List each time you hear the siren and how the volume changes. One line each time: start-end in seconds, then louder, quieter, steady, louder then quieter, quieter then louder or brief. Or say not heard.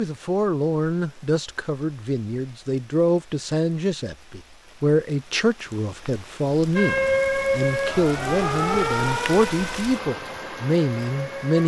6.8-11.6 quieter.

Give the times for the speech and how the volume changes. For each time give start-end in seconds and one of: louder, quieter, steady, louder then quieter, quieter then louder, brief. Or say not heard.
0.0-11.6 steady.